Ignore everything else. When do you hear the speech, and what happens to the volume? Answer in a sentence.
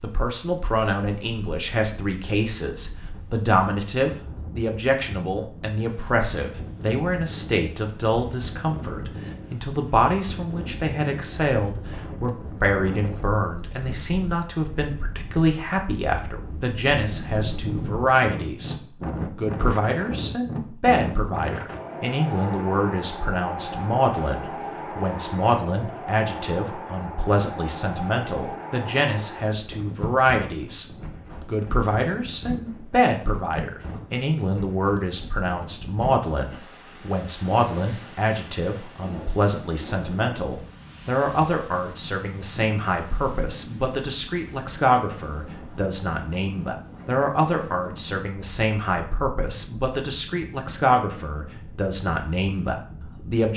You can hear the speech from 0.0 to 18.8 s, at a steady volume; from 19.4 to 30.9 s, at a steady volume; and from 31.4 to 53.5 s, at a steady volume.